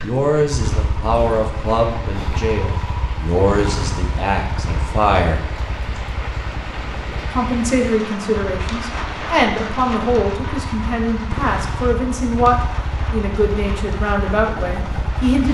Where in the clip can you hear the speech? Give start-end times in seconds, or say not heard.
0.0-5.4, 7.3-15.4.